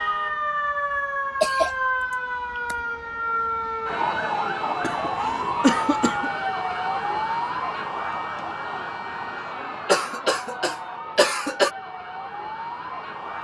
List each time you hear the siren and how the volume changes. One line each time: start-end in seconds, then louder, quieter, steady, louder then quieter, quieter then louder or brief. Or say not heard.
0.0-13.3 quieter.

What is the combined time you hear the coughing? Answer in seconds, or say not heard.
5 s.